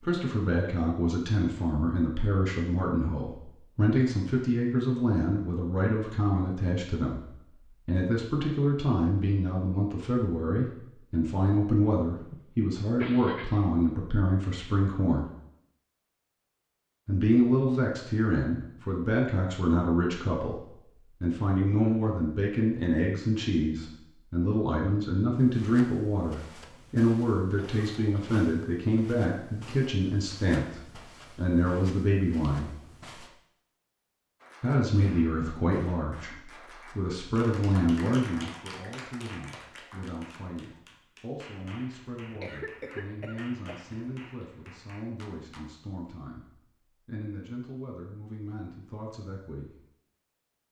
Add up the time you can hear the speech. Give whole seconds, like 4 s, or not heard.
46 s.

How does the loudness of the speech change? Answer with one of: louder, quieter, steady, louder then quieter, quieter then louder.
quieter.